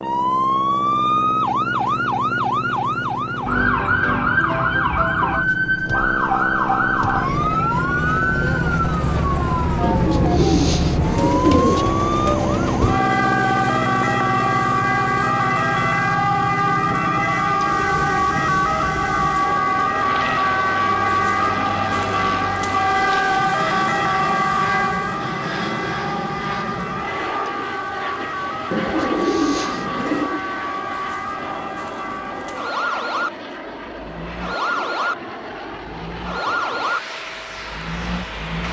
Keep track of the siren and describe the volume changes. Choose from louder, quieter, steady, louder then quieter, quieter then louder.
quieter.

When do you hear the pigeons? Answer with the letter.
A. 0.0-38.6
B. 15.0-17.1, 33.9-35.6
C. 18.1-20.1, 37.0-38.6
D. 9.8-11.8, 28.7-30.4
D.